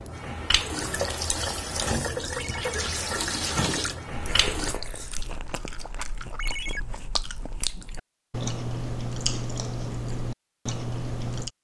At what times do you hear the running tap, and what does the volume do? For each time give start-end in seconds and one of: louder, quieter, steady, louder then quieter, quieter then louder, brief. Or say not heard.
0.0-4.8 steady.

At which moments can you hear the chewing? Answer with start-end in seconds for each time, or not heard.
4.0-11.5.